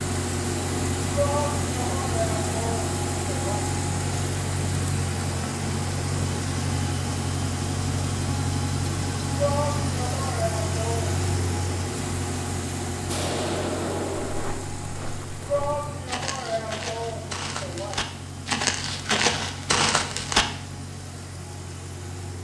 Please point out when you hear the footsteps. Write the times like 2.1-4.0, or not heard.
14.2-20.4.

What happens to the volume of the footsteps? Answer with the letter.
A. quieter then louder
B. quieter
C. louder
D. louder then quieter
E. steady
C.